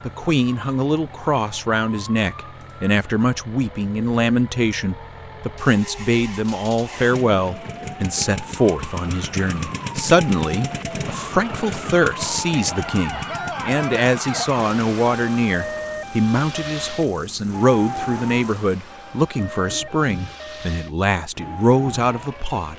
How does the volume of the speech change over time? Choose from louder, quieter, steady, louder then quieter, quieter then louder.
steady.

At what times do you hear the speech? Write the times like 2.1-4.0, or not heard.
0.1-22.7.